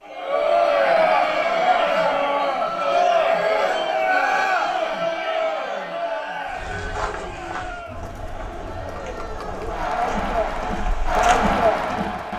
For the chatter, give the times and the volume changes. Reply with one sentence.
The chatter can be heard from 0.0 to 12.3 s, getting quieter then louder.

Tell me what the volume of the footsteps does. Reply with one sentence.
The loudness of the footsteps goes down, then up.